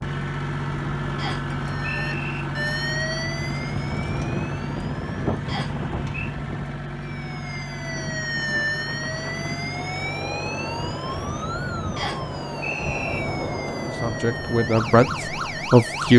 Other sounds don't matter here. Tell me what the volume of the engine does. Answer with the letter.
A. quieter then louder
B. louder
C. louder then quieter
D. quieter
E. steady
D.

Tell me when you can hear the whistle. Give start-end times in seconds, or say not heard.
1.1-2.4, 5.5-6.3, 11.9-13.2.